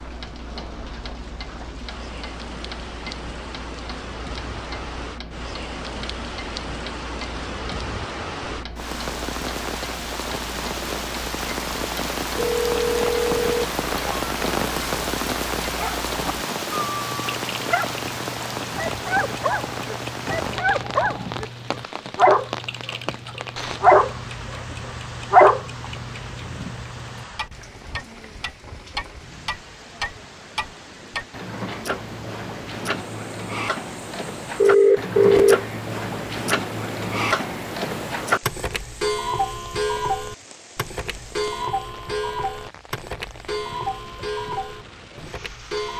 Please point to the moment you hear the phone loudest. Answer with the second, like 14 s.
35 s.